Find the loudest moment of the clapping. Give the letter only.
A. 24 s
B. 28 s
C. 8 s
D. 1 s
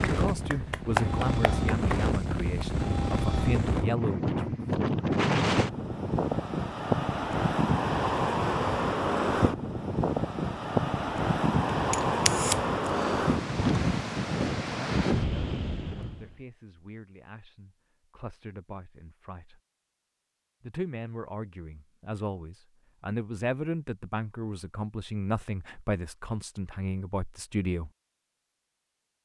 D.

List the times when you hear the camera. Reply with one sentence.
You can hear the camera from 11.9 to 13.3 s.